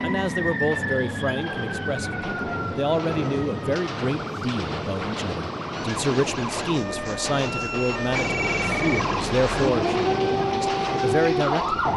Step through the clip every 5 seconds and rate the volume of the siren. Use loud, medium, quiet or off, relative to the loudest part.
medium, medium, loud.